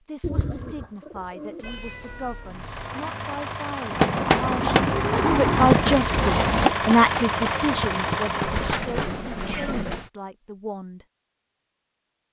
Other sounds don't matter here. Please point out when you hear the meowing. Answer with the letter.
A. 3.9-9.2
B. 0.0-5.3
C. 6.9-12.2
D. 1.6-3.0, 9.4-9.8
D.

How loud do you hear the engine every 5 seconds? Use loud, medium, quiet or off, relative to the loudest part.
medium, loud, off.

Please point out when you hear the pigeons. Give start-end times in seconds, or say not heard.
0.2-1.7, 4.3-6.3, 8.4-10.1.